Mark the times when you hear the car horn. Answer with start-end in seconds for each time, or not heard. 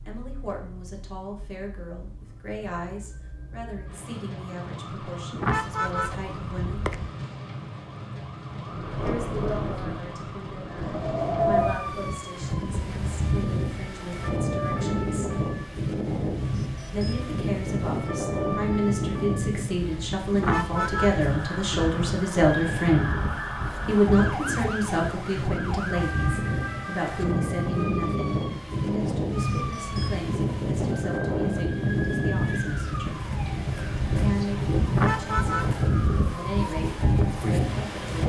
5.3-7.1, 20.3-21.2, 34.9-35.8.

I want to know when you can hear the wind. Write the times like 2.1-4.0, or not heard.
8.6-38.2.